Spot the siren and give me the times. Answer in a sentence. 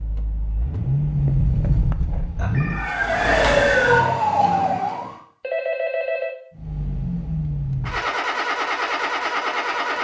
The siren can be heard from 2.7 to 5.2 s.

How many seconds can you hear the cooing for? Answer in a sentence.
The cooing can't be heard in this clip.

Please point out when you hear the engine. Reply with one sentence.
The engine can be heard from 0.0 to 2.9 s and from 6.5 to 9.9 s.